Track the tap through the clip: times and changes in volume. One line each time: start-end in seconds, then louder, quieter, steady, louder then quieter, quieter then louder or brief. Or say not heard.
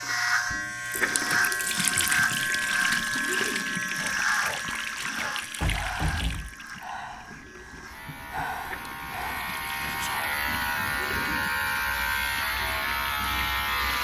0.0-14.0 quieter.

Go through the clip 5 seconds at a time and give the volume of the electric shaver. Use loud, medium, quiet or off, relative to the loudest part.
loud, medium, loud.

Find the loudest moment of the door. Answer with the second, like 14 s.
6 s.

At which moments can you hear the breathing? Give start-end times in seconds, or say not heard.
4.0-10.4.